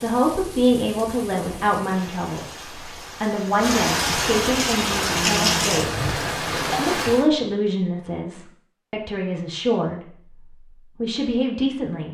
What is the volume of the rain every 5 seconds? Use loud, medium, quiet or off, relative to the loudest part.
medium, loud, off.